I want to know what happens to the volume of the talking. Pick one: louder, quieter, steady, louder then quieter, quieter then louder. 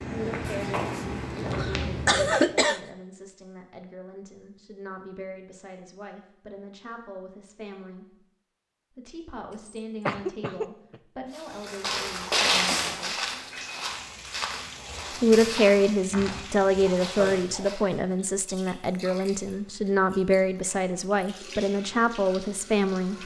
louder.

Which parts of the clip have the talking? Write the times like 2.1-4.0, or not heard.
0.1-8.2, 8.9-13.3, 15.2-23.2.